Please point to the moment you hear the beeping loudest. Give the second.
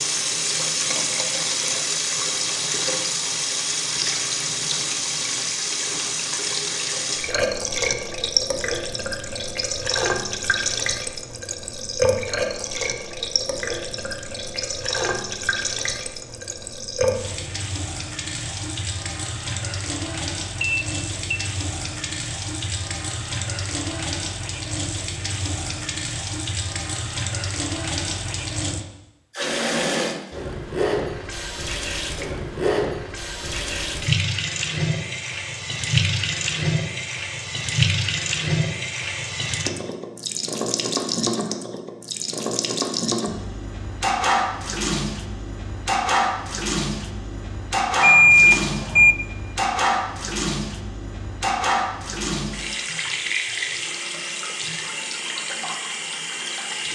48 s.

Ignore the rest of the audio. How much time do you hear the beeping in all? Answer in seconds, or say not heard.
2 s.